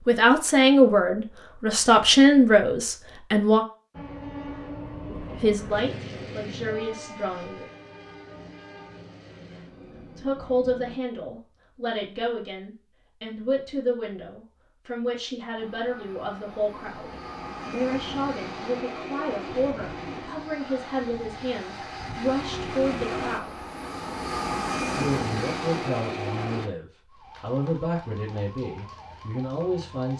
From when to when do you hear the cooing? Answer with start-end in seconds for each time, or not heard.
not heard.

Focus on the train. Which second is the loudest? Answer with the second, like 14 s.
25 s.